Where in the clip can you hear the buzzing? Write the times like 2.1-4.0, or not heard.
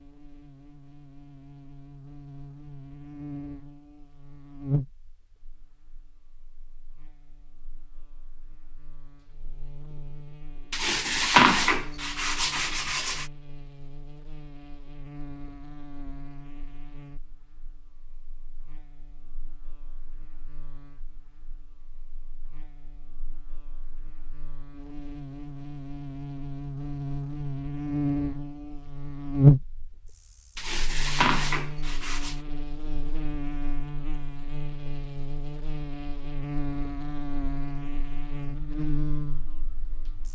0.0-40.3.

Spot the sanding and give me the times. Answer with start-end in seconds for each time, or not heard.
10.7-13.2, 30.6-32.4.